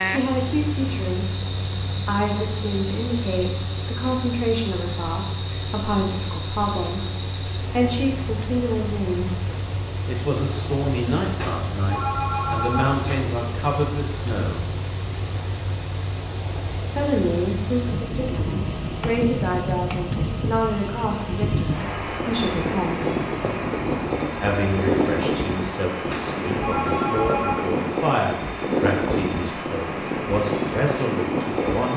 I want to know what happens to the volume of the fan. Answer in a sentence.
The volume of the fan goes up.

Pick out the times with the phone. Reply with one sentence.
You can hear the phone from 11.3 to 13.2 s and from 26.1 to 27.8 s.